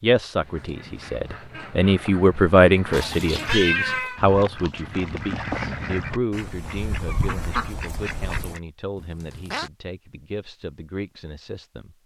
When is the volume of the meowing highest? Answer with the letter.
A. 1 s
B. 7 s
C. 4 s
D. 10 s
C.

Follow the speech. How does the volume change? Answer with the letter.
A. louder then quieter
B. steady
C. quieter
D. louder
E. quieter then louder
C.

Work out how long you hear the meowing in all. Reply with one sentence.
You can hear the meowing for 2 seconds altogether.